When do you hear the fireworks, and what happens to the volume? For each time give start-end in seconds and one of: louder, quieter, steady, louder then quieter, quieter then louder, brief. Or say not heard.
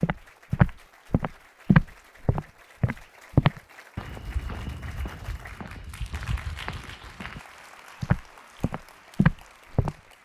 not heard.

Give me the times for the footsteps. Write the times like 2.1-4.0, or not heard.
0.0-7.4, 8.0-9.9.